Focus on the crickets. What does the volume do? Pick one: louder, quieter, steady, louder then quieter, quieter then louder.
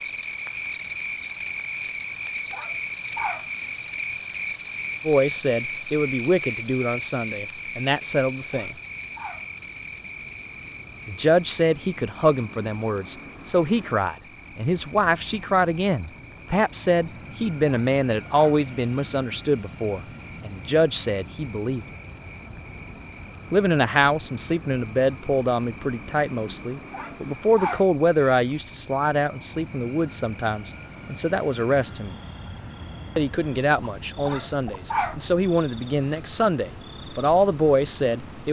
quieter.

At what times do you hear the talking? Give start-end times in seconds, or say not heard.
5.0-8.8, 11.1-21.9, 23.5-32.1, 33.1-38.4.